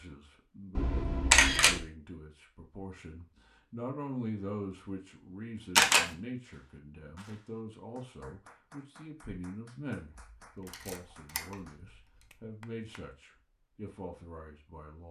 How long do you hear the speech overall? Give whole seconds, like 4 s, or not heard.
15 s.